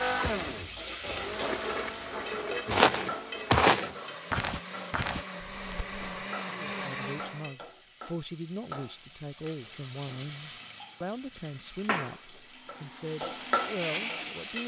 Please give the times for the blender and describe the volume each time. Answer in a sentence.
The blender can be heard from 0.0 to 7.5 s, getting quieter then louder; and briefly from 12.4 to 14.6 s.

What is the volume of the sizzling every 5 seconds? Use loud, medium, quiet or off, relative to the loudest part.
loud, medium, loud.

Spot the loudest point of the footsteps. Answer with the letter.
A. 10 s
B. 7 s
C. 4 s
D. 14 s
C.